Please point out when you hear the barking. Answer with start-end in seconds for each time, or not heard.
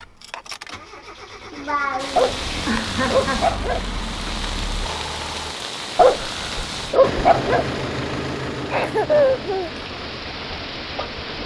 2.1-4.0, 6.0-7.7.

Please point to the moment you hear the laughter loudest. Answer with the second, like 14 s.
9 s.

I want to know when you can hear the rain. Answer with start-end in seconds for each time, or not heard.
1.9-11.4.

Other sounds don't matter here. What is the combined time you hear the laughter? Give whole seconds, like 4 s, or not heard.
3 s.